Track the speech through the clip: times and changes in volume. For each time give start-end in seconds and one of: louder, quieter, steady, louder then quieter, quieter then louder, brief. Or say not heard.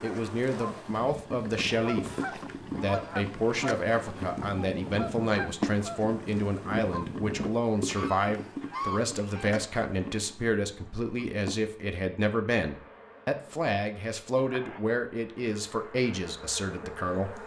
0.0-17.4 steady.